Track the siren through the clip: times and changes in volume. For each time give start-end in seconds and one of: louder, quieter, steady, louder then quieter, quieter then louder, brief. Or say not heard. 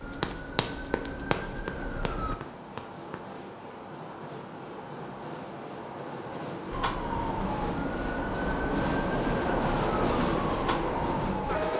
0.0-2.4 brief
6.7-11.7 steady.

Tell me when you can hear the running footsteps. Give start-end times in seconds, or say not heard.
0.1-3.3.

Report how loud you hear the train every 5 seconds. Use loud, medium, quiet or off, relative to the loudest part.
quiet, loud, loud.